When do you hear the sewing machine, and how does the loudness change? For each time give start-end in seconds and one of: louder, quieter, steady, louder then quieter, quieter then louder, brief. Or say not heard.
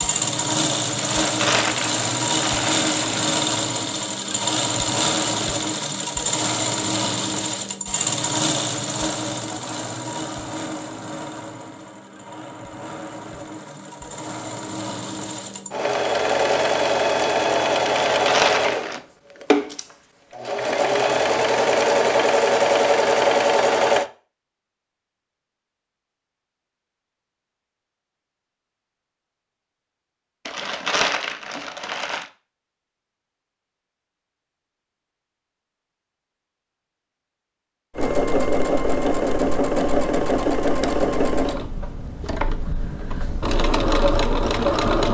0.0-24.1 quieter then louder
38.0-45.0 quieter then louder.